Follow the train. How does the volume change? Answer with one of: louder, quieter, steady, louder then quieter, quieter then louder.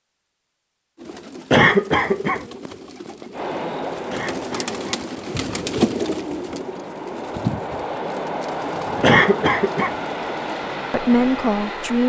quieter then louder.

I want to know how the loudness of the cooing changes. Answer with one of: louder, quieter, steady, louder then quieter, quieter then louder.
louder then quieter.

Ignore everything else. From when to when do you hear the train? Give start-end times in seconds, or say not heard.
3.3-12.0.